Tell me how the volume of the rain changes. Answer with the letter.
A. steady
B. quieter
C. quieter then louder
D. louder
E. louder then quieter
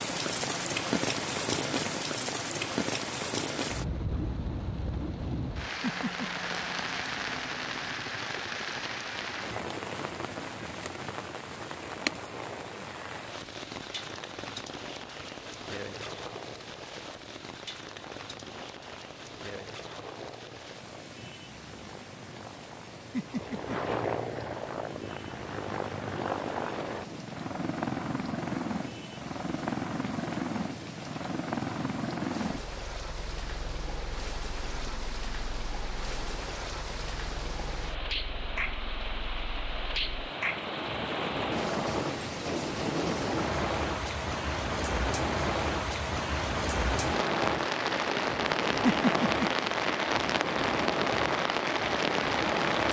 C.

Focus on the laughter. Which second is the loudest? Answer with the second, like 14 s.
49 s.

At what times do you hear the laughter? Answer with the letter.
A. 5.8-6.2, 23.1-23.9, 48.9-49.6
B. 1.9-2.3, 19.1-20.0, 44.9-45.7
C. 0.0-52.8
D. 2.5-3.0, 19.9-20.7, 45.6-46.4
A.